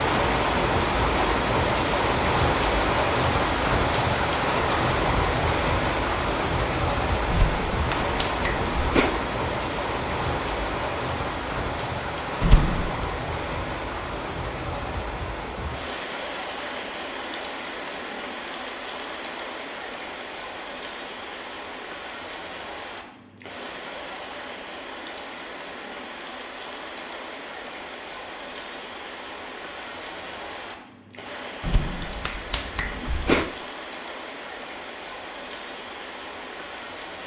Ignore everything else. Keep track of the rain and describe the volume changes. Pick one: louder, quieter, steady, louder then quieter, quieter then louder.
quieter.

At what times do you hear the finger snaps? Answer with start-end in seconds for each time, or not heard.
7.3-9.2, 12.4-13.1, 31.6-33.5.